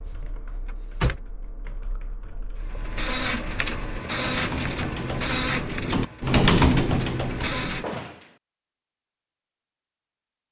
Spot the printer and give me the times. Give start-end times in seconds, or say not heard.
2.6-8.0.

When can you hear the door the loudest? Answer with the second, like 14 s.
1 s.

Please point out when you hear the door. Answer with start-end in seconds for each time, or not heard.
0.1-1.2, 7.8-8.3.